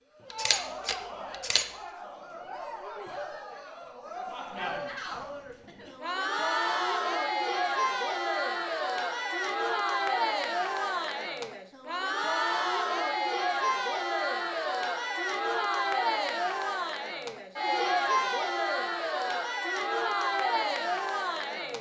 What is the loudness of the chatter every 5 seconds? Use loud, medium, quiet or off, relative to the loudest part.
medium, loud, loud, loud, loud.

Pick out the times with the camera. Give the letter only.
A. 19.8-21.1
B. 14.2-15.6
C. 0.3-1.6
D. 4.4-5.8
C.